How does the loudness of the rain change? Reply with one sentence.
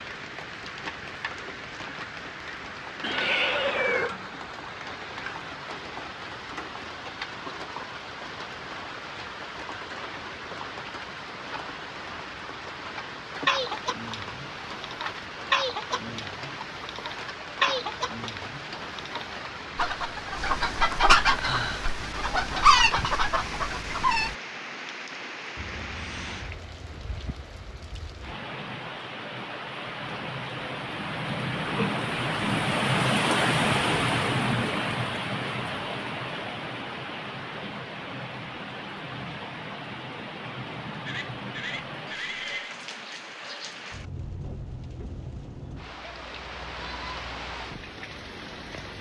The loudness of the rain goes up, then down.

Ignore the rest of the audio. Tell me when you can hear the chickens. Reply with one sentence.
You can hear the chickens from 13.4 to 24.4 s.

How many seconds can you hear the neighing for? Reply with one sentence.
You can hear the neighing for 4 seconds altogether.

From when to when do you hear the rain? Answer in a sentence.
You can hear the rain from 0.0 to 48.9 s.